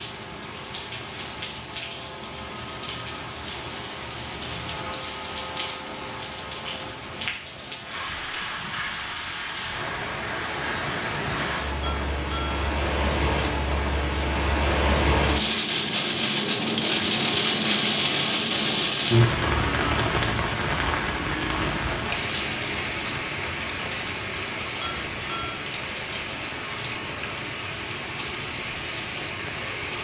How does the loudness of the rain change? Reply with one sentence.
The volume of the rain goes up, then down.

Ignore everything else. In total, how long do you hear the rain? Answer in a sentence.
You can hear the rain for 30 seconds altogether.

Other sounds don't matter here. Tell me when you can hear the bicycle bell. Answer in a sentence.
You can hear the bicycle bell from 11.8 to 12.7 s and from 24.8 to 25.6 s.